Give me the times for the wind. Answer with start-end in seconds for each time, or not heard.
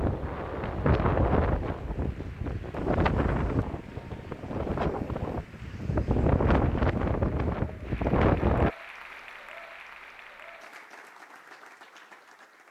0.0-8.8.